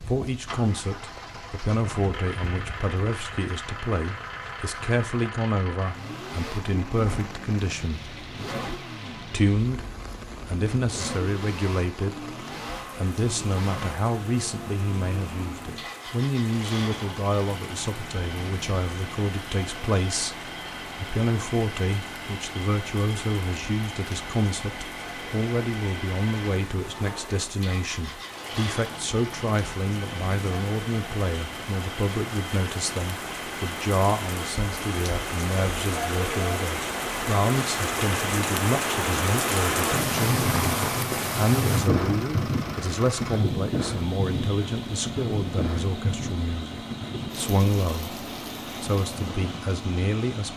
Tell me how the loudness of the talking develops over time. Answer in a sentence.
The volume of the talking stays about the same.